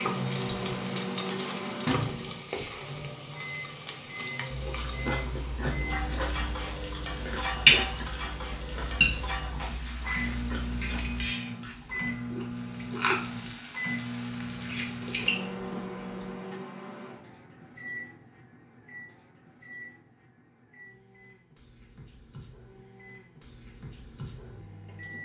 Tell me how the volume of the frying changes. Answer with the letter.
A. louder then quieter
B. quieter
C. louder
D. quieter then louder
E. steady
B.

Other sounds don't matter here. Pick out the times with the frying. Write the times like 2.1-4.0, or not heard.
0.0-15.5.